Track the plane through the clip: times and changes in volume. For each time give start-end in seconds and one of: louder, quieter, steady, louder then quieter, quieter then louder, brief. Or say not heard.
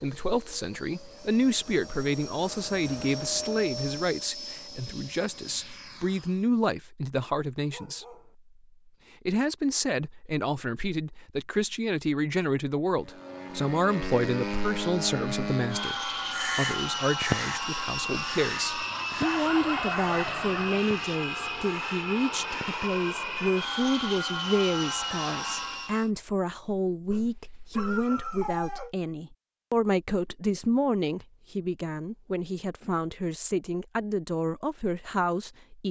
0.0-6.3 louder then quieter
13.1-26.1 steady.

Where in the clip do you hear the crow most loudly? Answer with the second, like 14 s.
17 s.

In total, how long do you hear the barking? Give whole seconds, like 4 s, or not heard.
4 s.